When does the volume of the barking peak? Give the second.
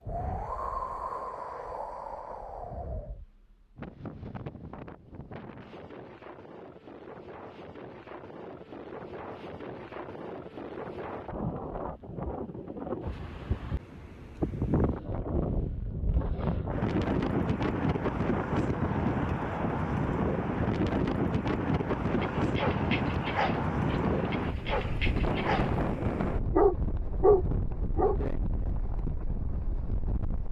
27 s.